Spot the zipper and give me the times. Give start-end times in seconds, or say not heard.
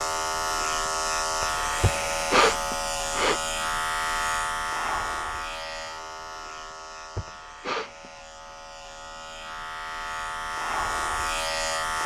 not heard.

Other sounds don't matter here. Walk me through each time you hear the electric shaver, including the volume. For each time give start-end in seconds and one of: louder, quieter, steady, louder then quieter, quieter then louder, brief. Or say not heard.
0.0-12.0 quieter then louder.